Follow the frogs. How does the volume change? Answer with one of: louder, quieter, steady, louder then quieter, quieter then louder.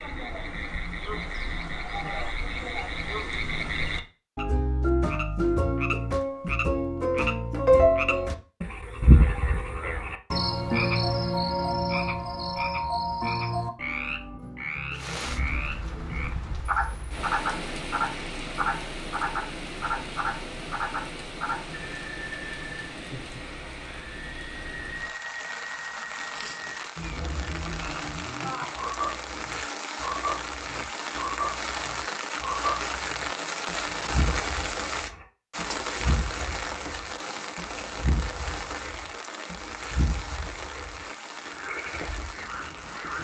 quieter.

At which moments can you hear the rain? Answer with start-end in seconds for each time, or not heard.
14.9-43.1.